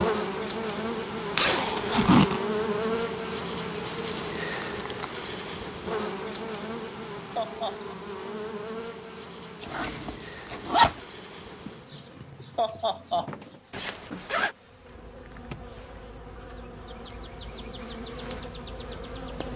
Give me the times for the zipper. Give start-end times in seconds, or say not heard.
1.4-2.4, 9.6-11.0, 13.7-14.6.